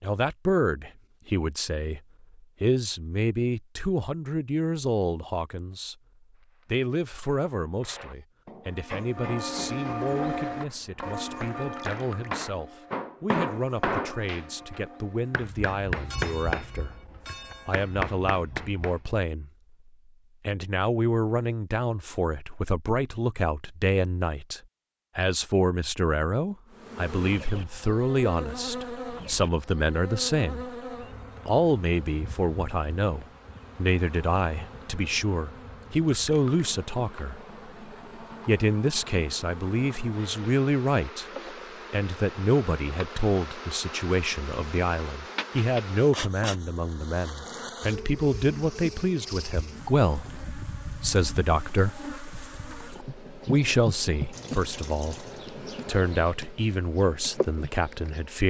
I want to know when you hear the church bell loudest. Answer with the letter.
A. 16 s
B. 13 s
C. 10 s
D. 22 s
C.